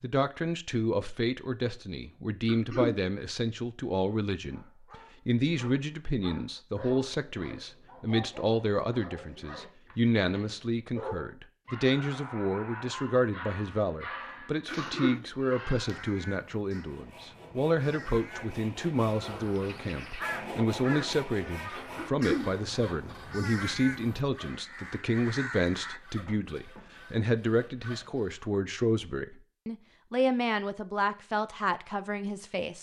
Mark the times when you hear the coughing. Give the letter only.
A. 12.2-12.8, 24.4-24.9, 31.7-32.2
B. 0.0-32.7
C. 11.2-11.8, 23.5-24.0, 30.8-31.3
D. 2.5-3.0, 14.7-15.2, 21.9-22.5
D.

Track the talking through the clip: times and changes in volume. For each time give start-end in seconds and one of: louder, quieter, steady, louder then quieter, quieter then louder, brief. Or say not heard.
0.0-32.7 steady.